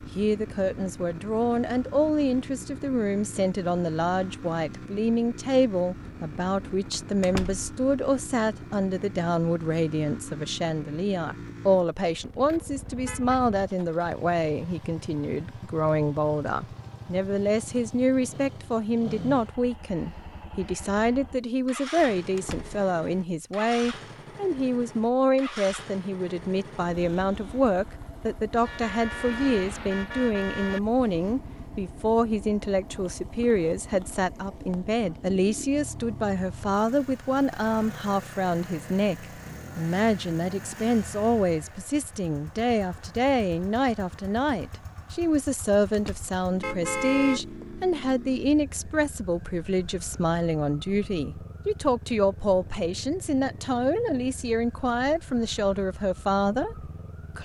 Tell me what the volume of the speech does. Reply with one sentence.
The loudness of the speech stays about the same.